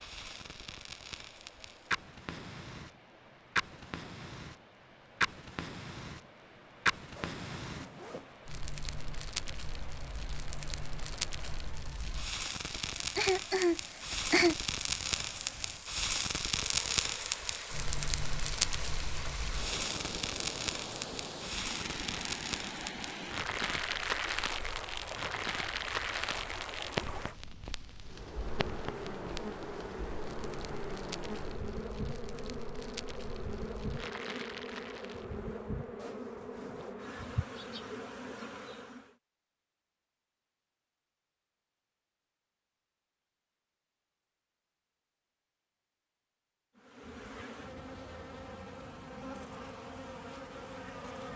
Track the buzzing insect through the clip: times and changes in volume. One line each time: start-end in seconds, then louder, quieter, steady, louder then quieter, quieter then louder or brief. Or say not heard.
28.1-39.1 steady
46.8-51.3 steady.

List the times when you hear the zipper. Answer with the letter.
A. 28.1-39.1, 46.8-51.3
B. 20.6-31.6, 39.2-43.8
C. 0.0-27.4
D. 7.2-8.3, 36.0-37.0
D.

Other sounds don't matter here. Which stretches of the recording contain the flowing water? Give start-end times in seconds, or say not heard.
0.0-27.4.